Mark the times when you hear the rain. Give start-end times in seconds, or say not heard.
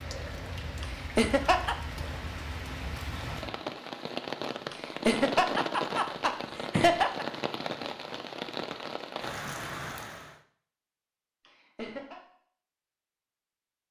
0.0-10.4.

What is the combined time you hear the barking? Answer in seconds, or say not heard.
not heard.